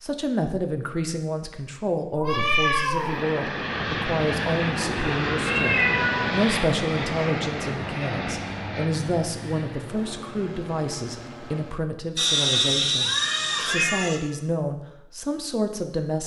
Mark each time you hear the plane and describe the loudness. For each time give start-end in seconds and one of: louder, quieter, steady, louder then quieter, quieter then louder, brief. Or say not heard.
2.9-11.8 quieter.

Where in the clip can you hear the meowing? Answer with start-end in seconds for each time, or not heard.
2.1-3.2, 5.5-6.5, 12.2-14.2.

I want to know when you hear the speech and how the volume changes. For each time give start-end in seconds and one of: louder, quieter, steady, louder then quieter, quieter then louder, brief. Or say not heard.
0.0-16.2 steady.